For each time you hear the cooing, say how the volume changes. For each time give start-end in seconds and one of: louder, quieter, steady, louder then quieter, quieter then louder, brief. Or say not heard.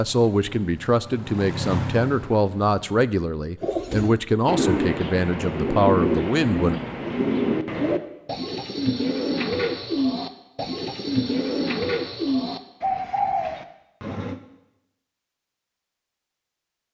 3.6-14.4 steady.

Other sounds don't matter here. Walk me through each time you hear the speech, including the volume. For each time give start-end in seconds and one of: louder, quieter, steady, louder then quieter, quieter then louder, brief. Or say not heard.
0.0-6.8 steady.